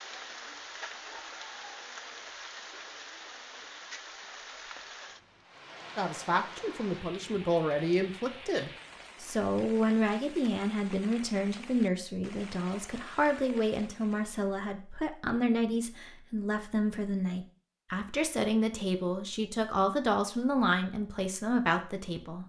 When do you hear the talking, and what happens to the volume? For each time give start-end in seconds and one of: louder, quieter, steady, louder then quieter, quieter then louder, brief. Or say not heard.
6.0-22.4 steady.